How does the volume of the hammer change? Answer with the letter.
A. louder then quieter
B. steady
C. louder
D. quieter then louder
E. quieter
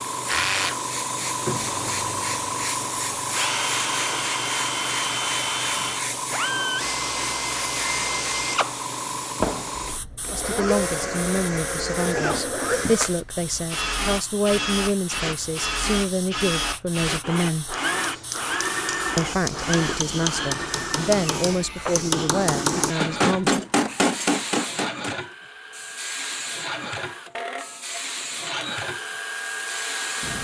C.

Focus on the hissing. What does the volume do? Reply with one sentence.
The volume of the hissing goes down, then up.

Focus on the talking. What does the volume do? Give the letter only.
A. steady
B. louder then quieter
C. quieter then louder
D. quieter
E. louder
A.